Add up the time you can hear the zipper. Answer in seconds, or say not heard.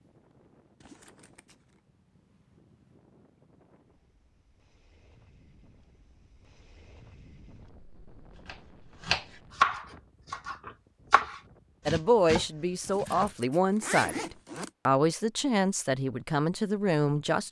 3 s.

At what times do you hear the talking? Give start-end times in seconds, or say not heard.
11.8-17.4.